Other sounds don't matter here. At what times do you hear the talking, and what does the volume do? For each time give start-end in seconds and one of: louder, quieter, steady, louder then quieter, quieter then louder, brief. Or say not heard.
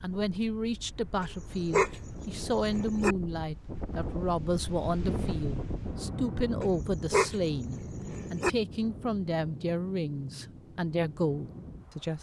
0.0-12.1 steady.